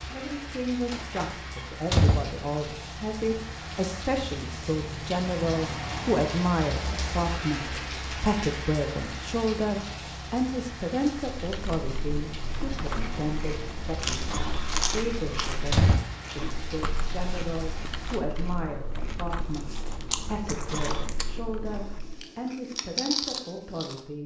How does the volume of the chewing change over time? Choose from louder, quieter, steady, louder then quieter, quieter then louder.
quieter then louder.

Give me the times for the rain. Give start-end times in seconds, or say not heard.
0.0-18.2.